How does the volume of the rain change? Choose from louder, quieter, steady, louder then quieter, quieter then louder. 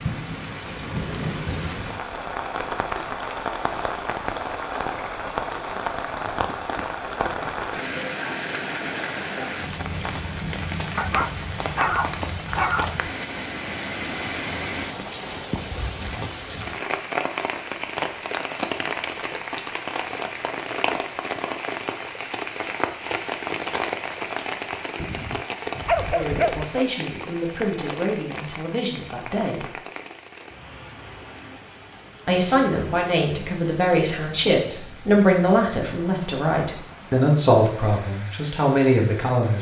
quieter.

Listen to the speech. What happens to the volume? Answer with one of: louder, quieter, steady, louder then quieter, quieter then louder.
louder.